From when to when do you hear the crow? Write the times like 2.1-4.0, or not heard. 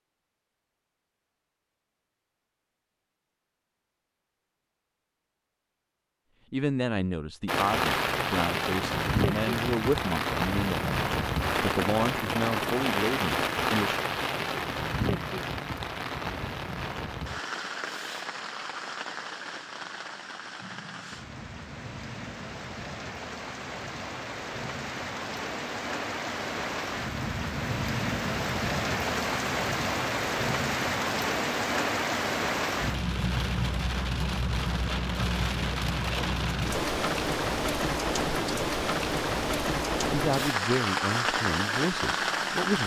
not heard.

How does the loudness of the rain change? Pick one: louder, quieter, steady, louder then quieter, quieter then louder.
quieter then louder.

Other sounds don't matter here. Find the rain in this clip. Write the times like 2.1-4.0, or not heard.
7.5-42.8.